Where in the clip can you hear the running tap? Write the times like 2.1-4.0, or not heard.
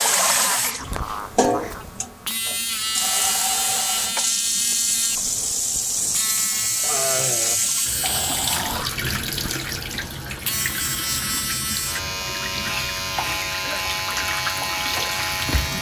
0.0-15.7.